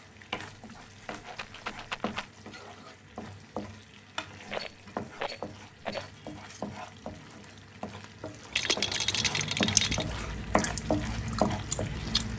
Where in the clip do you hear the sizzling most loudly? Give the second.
11 s.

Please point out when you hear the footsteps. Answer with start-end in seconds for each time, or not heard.
not heard.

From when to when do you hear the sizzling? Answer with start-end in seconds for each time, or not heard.
0.0-12.3.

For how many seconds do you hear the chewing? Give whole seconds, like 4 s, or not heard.
4 s.